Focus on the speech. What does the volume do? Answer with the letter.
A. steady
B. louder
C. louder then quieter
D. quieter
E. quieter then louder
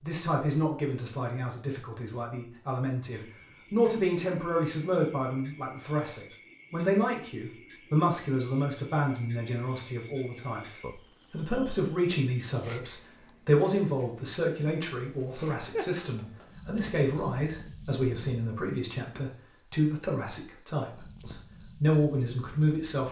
A.